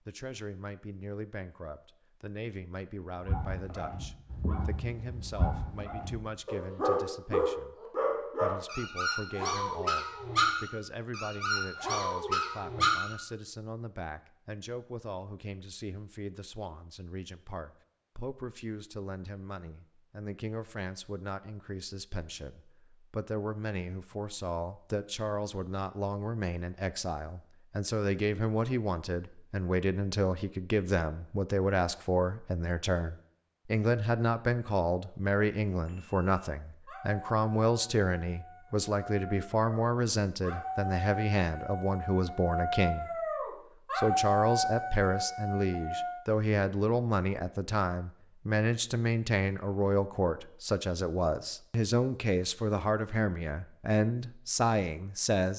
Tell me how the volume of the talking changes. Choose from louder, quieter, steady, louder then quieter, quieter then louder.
louder.